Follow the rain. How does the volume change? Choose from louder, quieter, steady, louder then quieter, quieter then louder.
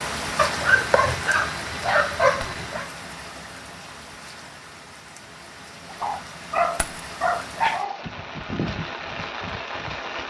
quieter then louder.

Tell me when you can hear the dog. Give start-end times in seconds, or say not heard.
0.3-2.9, 5.8-8.1.